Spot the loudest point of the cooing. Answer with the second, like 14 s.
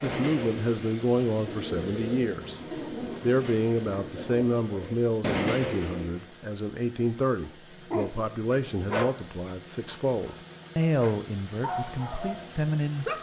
5 s.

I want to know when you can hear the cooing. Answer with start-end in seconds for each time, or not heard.
0.0-6.2.